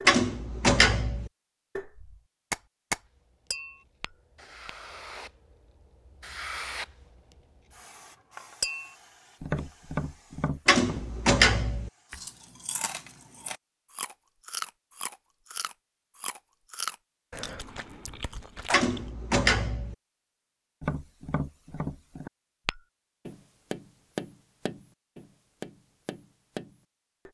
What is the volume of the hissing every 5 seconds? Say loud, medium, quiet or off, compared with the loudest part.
medium, loud, quiet, off, off, off.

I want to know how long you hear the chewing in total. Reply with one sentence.
The chewing can be heard for 7 seconds in total.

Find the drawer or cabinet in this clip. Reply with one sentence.
You can hear the drawer or cabinet from 0.1 to 1.3 s, from 10.7 to 11.9 s and from 18.7 to 19.9 s.